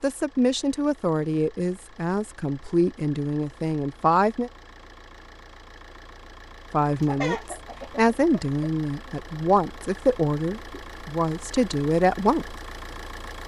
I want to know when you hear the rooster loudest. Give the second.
7 s.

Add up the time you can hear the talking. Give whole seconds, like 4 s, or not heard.
10 s.